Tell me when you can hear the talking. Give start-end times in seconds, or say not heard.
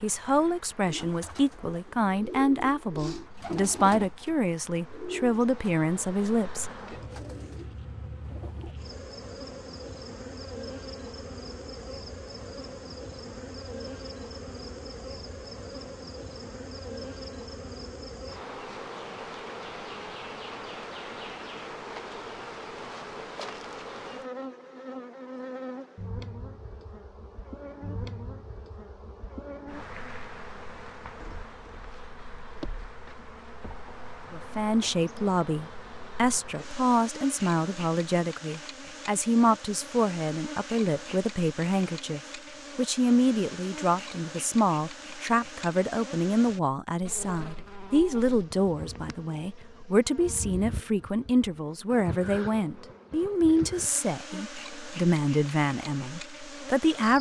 0.0-6.8, 34.3-57.1.